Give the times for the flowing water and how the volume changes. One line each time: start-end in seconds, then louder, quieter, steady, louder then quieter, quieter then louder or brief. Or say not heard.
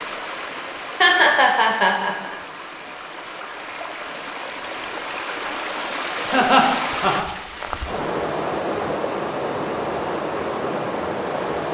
0.0-11.6 louder.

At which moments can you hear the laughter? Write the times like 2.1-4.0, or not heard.
1.0-2.4, 6.3-7.2.